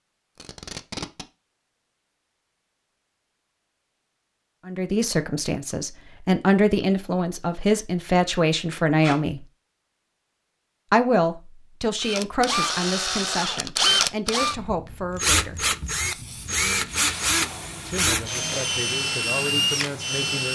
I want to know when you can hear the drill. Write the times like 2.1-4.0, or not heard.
12.0-20.4.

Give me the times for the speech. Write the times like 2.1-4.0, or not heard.
4.7-9.4, 10.9-15.8, 17.9-20.4.